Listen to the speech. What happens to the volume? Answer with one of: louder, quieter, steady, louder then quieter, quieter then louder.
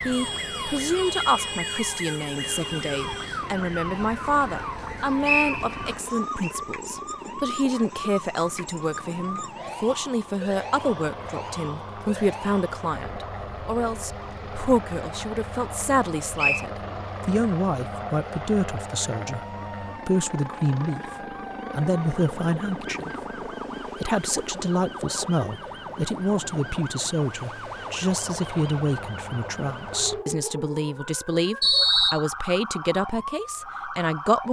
steady.